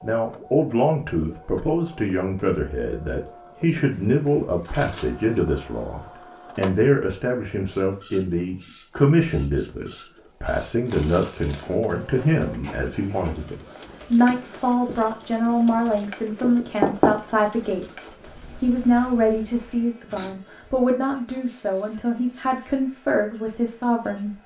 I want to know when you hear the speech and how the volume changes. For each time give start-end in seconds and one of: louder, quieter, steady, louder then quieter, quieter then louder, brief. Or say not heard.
0.0-24.4 steady.